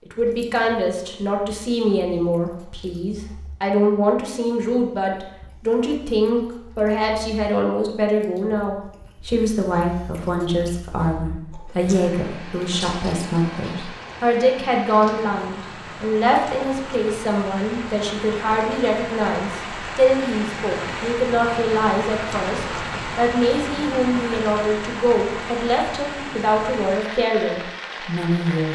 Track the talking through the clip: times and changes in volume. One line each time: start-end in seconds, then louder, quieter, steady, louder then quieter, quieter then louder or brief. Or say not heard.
0.1-28.7 steady.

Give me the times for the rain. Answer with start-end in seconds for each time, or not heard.
11.8-28.7.